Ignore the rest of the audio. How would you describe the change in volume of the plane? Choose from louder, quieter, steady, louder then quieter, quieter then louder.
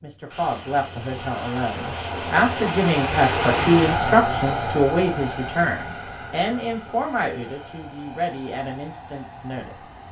louder then quieter.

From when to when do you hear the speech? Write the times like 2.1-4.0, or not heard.
0.0-10.0.